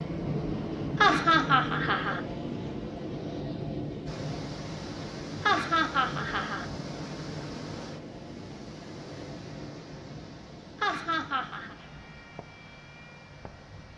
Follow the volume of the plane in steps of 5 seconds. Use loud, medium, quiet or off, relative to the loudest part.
loud, medium, quiet.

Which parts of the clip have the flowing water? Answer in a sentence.
The flowing water can be heard from 4.0 to 13.9 s.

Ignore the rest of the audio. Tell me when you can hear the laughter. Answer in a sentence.
You can hear the laughter from 1.0 to 2.2 s, from 5.5 to 6.7 s and from 10.8 to 11.8 s.